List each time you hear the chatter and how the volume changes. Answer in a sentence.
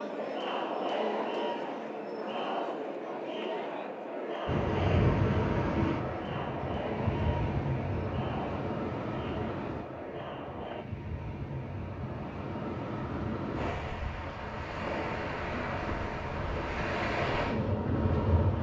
The chatter can be heard from 0.0 to 10.8 s, getting quieter.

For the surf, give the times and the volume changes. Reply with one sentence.
You can hear the surf from 4.5 to 18.5 s, getting quieter then louder.